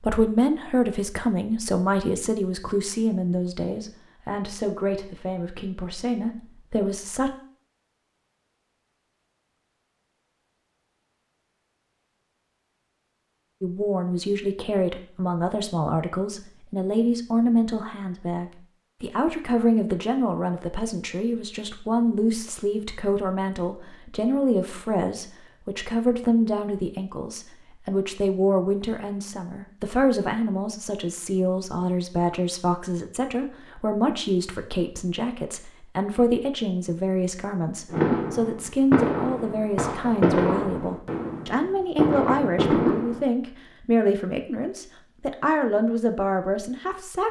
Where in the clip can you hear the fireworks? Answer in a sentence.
The fireworks can be heard from 37.9 to 43.2 s.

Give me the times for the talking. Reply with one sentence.
You can hear the talking from 0.0 to 7.3 s and from 13.6 to 47.2 s.